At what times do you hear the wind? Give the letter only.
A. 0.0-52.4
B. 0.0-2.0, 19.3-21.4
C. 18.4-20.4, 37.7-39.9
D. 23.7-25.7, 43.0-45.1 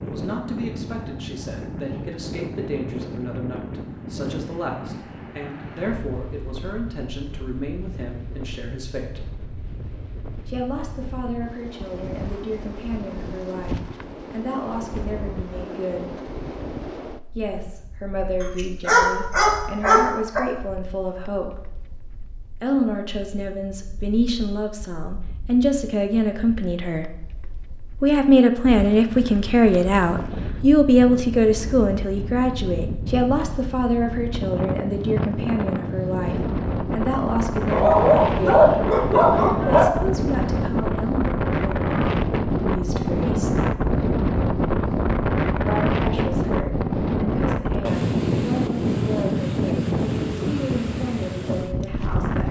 A.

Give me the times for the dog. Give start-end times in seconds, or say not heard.
18.4-20.4, 37.7-39.9.